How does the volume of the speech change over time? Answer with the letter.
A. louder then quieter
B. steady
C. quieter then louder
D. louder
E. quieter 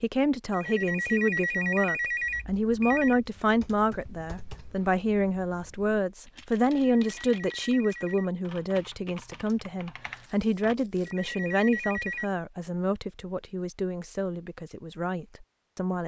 E.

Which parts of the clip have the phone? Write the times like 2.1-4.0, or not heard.
0.5-3.2, 6.8-8.3, 11.1-12.3.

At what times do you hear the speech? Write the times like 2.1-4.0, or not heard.
0.0-16.0.